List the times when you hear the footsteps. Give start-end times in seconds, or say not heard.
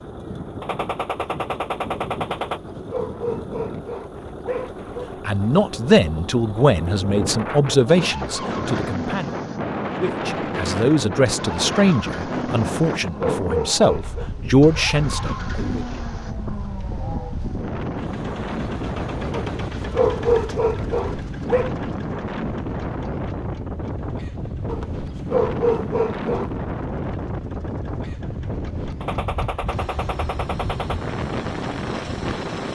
not heard.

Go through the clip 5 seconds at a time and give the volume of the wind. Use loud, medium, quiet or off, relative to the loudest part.
quiet, loud, loud, loud, loud, loud, loud.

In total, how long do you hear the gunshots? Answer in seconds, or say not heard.
4 s.